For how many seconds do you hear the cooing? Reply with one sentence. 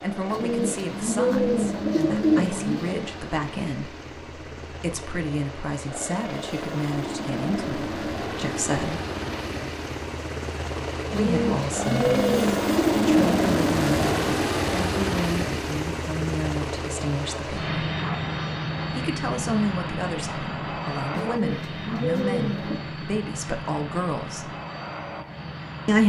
The cooing can be heard for 7 seconds in total.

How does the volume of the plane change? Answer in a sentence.
The volume of the plane goes up, then down.